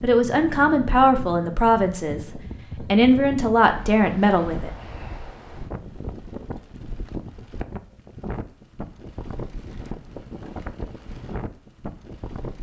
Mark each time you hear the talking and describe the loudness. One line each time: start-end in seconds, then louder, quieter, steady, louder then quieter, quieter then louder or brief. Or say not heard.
0.0-4.7 quieter then louder.